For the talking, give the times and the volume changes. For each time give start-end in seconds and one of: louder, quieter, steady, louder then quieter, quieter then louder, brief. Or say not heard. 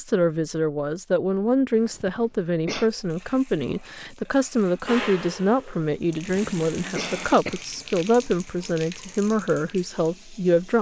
0.0-10.7 steady.